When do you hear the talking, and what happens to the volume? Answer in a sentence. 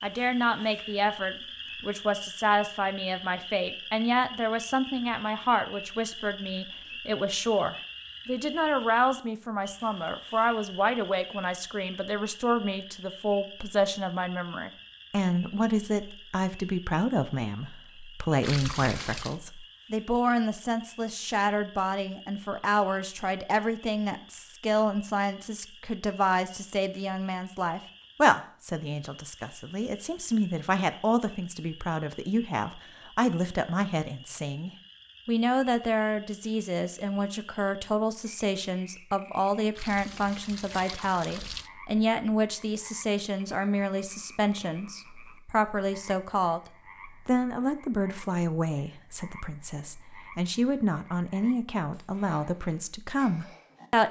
You can hear the talking from 0.0 to 46.6 s, at a steady volume; and from 47.2 to 54.0 s, getting quieter then louder.